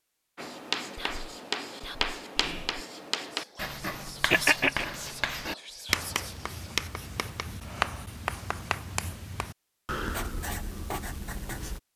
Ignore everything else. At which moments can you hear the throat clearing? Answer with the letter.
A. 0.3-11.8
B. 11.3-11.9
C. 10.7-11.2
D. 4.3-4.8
D.